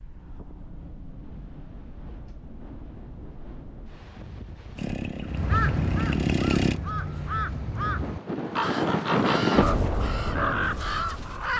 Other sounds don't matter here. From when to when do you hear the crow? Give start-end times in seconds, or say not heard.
5.2-11.5.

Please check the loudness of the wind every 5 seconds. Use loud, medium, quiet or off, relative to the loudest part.
quiet, loud, medium.